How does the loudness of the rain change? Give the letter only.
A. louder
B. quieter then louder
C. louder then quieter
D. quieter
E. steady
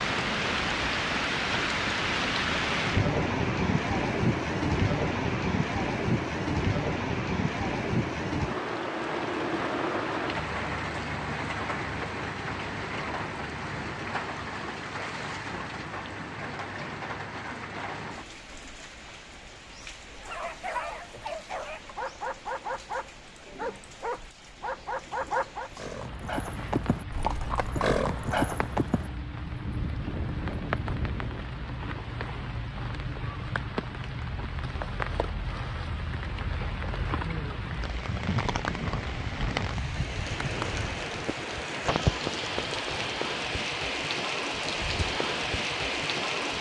B.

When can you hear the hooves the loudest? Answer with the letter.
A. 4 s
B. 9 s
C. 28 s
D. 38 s
C.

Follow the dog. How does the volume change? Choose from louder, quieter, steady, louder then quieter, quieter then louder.
steady.